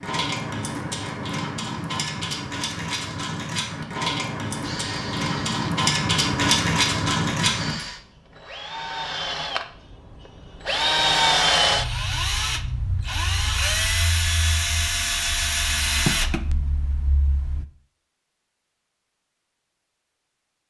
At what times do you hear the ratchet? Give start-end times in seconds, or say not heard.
0.0-7.8.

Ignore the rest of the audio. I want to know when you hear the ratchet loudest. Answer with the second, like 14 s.
7 s.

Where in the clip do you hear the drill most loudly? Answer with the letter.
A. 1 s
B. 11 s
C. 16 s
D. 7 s
B.